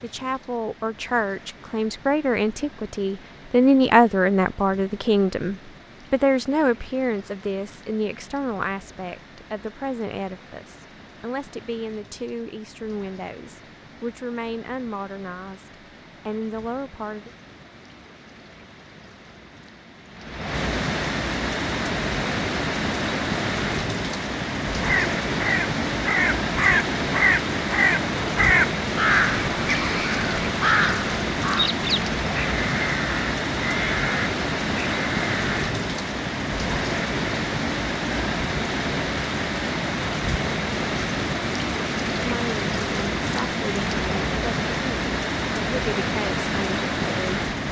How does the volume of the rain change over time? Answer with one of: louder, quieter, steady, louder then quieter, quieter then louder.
louder.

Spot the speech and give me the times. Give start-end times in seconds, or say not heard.
0.0-17.3, 42.1-47.3.